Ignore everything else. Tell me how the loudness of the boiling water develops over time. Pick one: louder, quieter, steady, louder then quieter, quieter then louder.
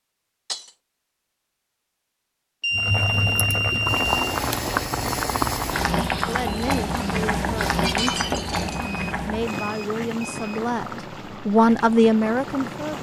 quieter.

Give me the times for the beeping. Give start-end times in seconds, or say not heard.
2.6-4.4, 8.8-10.6.